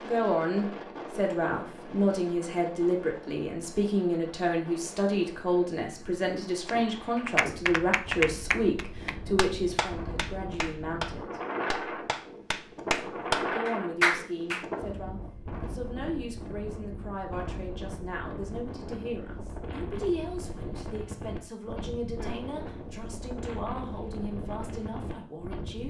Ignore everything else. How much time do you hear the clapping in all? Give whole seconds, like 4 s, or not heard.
8 s.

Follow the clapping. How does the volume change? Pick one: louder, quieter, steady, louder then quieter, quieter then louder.
quieter then louder.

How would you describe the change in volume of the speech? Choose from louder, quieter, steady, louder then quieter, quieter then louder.
quieter.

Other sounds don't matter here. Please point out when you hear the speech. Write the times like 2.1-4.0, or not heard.
0.0-11.4, 13.5-25.8.